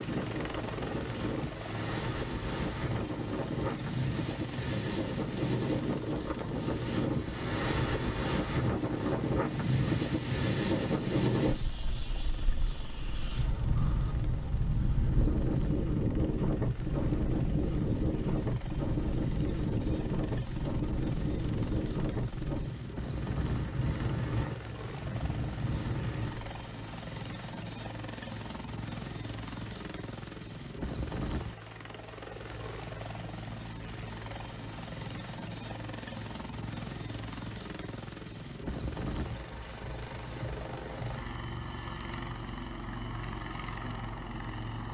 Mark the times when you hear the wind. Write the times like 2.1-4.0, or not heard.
0.0-26.6.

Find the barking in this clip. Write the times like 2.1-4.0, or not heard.
not heard.